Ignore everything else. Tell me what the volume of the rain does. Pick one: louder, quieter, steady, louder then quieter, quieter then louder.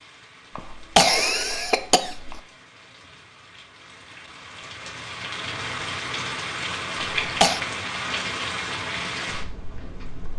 louder.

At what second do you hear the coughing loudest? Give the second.
1 s.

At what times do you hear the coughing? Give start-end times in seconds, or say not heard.
0.6-2.4, 7.0-7.6.